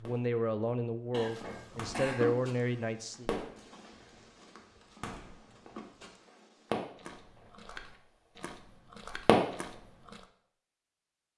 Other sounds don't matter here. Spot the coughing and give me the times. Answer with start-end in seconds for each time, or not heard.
1.1-2.4.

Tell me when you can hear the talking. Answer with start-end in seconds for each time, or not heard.
0.0-3.3.